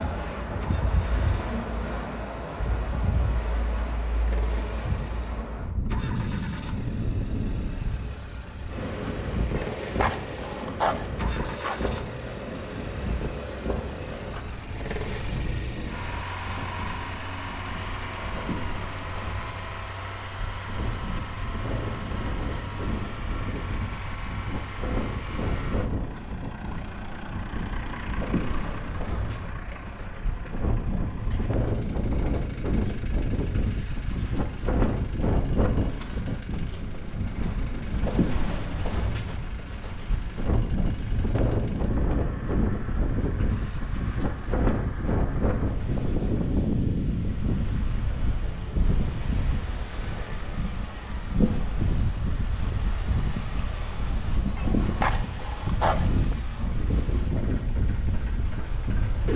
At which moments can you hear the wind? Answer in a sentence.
The wind can be heard from 0.0 to 59.3 s.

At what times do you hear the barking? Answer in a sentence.
The barking can be heard from 9.6 to 11.8 s and from 54.5 to 56.4 s.